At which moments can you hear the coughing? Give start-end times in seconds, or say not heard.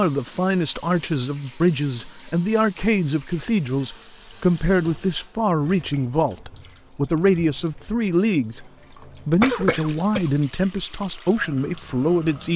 9.4-10.3.